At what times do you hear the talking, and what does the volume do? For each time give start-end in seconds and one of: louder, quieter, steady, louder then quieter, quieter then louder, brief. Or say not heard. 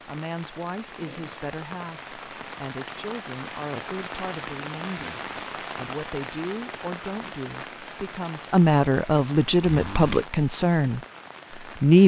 0.1-12.0 louder.